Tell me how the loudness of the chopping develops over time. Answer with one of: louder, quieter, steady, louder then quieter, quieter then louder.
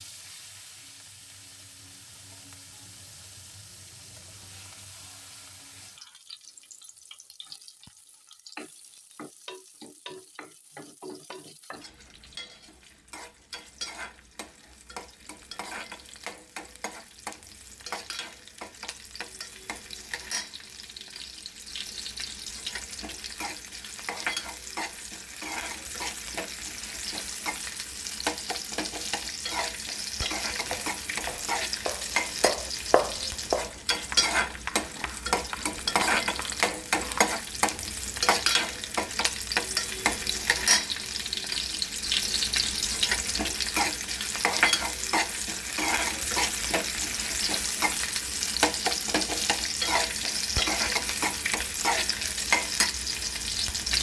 louder then quieter.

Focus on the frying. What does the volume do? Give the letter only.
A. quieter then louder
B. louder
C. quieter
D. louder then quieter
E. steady
B.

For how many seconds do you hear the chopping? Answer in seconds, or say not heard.
7 s.